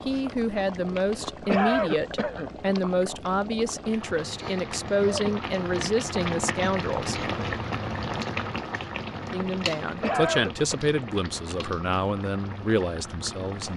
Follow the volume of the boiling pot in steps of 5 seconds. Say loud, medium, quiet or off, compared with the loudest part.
medium, loud, medium.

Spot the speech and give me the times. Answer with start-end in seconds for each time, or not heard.
0.1-7.2, 9.3-13.7.